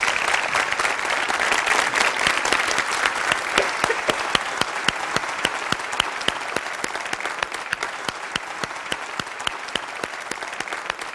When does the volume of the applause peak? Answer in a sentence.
The loudest moment of the applause is at 2 seconds.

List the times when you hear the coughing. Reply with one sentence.
The coughing can be heard from 3.5 to 4.3 s.